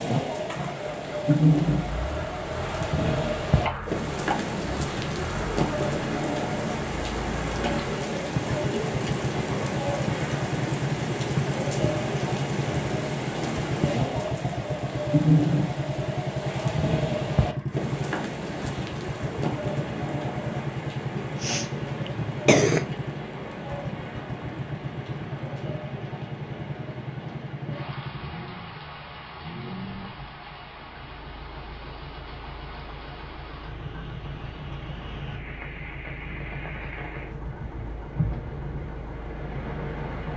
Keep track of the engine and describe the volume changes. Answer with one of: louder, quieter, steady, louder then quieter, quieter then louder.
louder then quieter.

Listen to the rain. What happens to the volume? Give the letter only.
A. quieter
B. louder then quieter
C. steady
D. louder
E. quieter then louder
A.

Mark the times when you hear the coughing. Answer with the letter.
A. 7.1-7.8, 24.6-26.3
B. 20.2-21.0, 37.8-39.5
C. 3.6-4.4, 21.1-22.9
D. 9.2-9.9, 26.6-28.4
C.